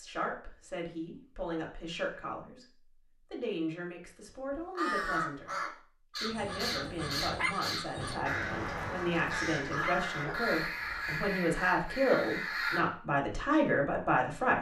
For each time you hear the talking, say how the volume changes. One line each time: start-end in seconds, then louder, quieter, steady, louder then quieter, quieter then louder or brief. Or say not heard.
0.0-14.5 louder.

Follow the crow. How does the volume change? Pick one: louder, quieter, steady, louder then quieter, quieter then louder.
steady.